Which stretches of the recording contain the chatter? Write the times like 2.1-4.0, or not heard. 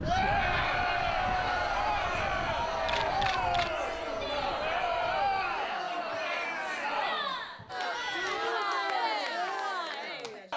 0.0-10.5.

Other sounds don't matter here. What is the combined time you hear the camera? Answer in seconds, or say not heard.
2 s.